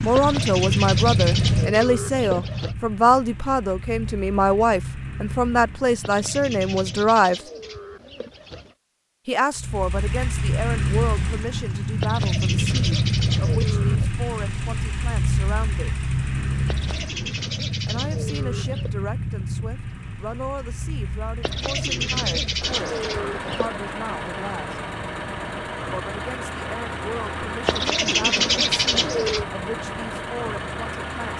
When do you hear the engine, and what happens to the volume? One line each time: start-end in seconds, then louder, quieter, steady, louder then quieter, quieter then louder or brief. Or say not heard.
0.0-7.3 quieter
9.6-31.3 quieter.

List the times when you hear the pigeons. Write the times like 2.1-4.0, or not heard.
0.1-2.8, 6.0-8.8, 12.0-14.1, 16.6-18.9, 21.4-23.7, 27.6-29.4.